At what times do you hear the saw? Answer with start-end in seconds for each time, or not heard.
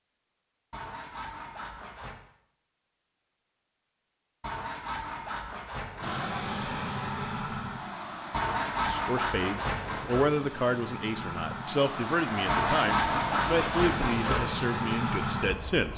0.7-2.3, 4.4-6.2, 8.3-10.3, 12.4-14.5.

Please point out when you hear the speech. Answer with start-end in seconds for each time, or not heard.
8.8-15.9.